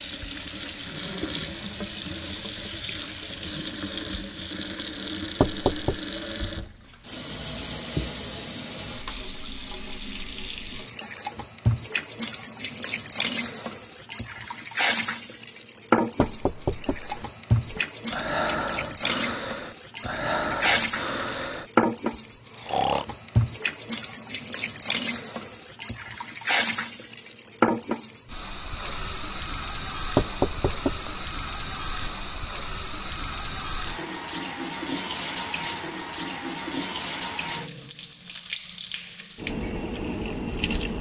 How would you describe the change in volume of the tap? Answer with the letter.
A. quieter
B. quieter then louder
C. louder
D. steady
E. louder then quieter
D.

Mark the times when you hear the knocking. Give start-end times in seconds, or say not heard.
5.4-6.0, 16.2-17.2, 30.1-31.2.